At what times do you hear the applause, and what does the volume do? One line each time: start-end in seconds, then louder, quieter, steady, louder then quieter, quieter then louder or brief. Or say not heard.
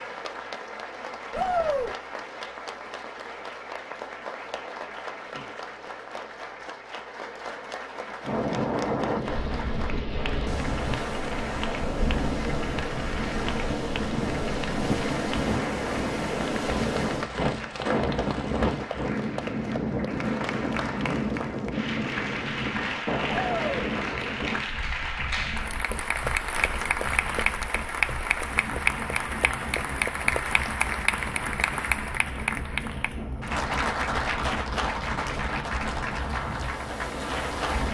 0.0-37.8 louder.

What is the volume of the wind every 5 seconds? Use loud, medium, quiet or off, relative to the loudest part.
off, loud, loud, loud, loud, quiet, medium, medium.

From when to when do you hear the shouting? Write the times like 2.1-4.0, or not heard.
1.3-1.9, 23.3-23.9.